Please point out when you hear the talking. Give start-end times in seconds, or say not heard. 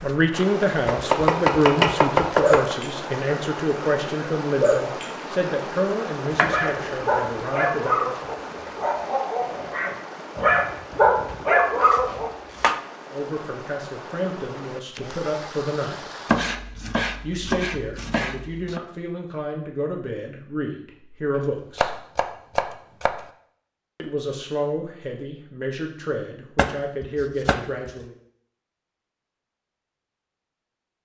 0.0-8.3, 13.1-16.0, 17.2-21.9, 23.9-28.1.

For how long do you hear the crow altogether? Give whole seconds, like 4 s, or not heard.
not heard.